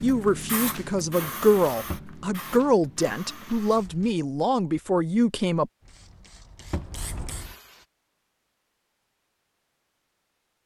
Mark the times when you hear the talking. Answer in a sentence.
The talking can be heard from 0.0 to 5.7 s.